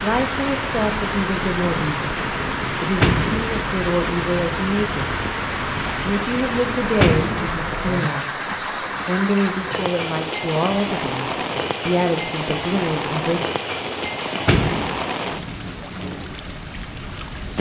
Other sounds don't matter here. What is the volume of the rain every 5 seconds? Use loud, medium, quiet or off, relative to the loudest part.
loud, loud, loud, medium.